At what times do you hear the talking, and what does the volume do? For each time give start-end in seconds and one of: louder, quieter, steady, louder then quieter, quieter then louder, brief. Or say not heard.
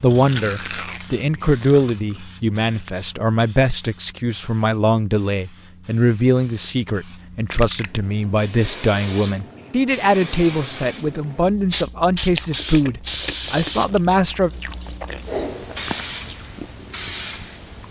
0.0-14.5 steady.